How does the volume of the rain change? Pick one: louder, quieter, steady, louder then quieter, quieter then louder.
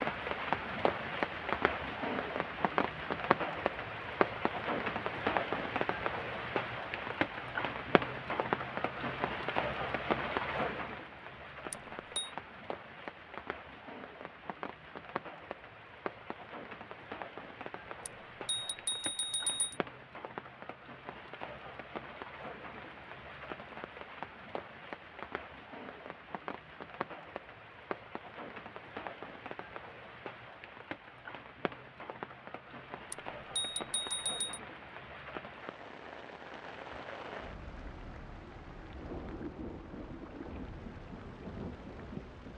quieter.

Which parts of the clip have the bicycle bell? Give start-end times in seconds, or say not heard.
11.7-12.3, 18.1-19.8, 33.1-34.6.